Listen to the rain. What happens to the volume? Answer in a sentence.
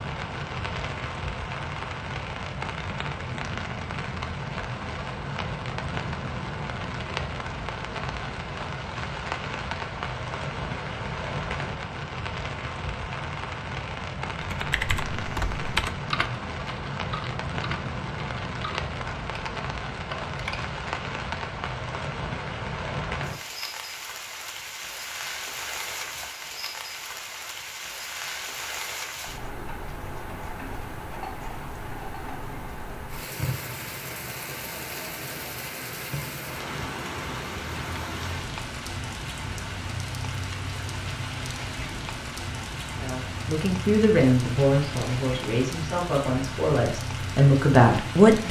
The loudness of the rain stays about the same.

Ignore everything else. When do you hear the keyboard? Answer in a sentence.
You can hear the keyboard from 14.4 to 20.6 s.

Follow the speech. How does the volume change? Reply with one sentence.
The volume of the speech goes down, then up.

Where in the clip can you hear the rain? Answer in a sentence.
You can hear the rain from 0.0 to 48.4 s.